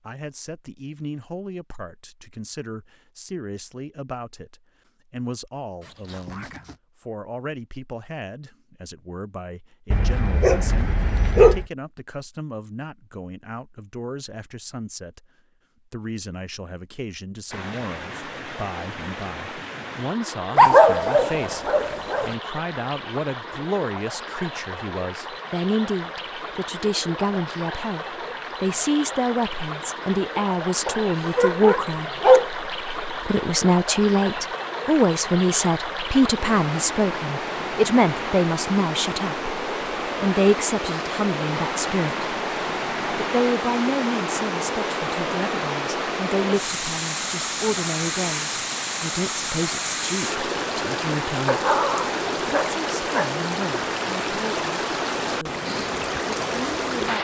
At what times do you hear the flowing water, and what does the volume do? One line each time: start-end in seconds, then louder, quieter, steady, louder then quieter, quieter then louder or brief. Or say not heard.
17.5-57.1 louder.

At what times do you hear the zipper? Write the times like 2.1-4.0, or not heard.
5.8-6.8.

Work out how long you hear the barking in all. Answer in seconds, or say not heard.
7 s.